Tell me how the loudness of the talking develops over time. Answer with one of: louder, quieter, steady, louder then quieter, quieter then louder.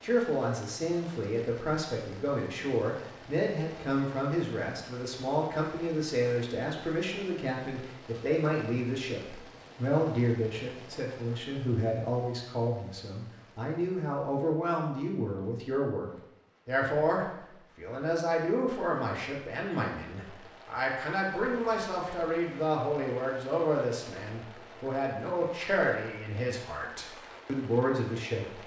steady.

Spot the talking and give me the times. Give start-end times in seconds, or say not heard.
0.0-28.6.